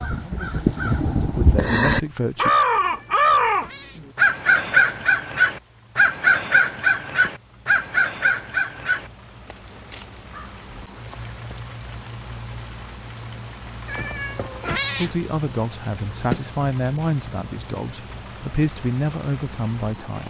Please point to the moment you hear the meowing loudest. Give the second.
15 s.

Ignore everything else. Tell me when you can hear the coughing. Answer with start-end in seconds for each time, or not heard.
not heard.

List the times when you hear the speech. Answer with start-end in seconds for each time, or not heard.
0.1-2.5, 14.9-20.2.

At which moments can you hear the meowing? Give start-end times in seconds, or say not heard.
2.8-4.0, 13.8-15.2.